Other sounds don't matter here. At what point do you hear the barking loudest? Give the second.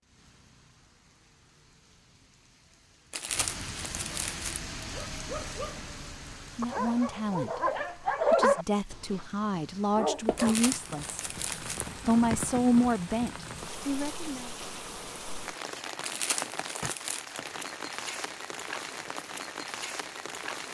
8 s.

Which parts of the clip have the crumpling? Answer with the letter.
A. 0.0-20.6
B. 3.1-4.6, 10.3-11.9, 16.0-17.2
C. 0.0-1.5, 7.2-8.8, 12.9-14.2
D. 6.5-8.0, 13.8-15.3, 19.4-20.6
B.